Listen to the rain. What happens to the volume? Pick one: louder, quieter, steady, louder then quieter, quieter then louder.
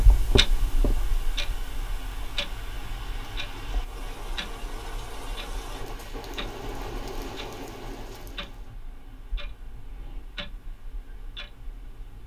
louder.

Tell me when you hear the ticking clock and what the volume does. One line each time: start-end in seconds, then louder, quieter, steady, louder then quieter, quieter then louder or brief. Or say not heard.
0.0-12.2 quieter.